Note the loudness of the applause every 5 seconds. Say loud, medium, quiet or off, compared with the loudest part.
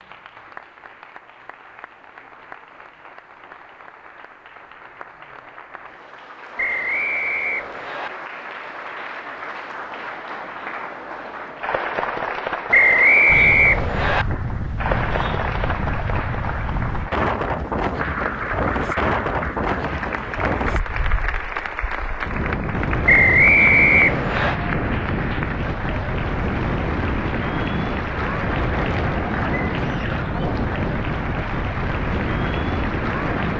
quiet, medium, loud, loud, loud, loud, loud.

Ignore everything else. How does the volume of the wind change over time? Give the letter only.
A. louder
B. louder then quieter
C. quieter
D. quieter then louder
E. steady
E.